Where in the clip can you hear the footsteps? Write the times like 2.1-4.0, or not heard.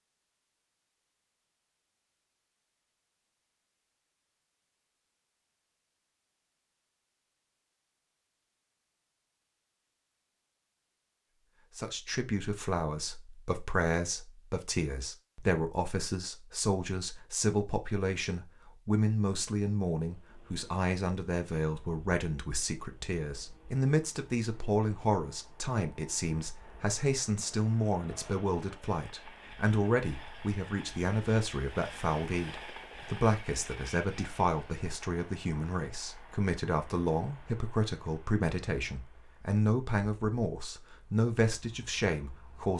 not heard.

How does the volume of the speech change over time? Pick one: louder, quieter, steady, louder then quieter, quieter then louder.
steady.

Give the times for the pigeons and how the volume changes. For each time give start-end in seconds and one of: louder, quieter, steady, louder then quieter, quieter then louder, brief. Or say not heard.
not heard.